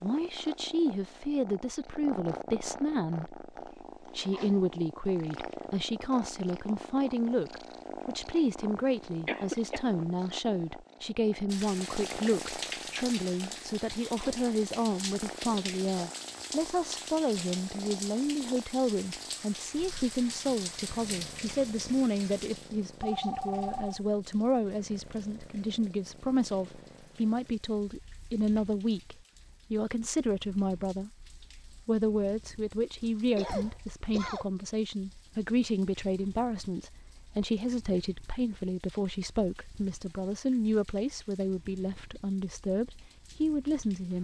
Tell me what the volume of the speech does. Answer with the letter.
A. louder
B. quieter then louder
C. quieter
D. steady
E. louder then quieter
D.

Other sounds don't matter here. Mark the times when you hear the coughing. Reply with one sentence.
The coughing can be heard from 9.2 to 9.8 s and from 33.0 to 34.5 s.